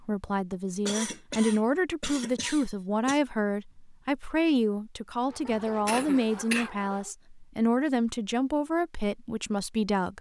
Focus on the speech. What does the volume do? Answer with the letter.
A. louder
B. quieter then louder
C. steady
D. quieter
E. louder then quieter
C.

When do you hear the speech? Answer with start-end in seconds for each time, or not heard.
0.0-10.1.